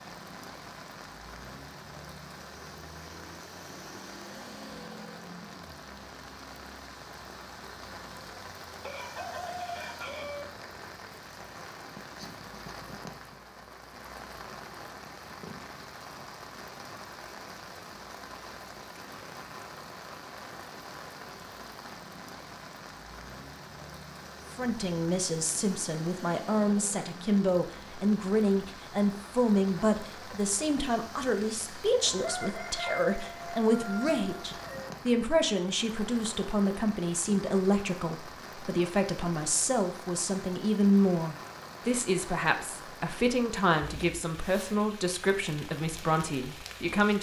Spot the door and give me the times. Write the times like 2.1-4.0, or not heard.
not heard.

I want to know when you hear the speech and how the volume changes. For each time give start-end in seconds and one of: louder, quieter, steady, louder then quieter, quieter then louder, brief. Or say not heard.
24.6-47.1 steady.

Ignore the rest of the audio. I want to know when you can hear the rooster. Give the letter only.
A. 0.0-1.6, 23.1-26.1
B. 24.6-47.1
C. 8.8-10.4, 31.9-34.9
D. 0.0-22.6
C.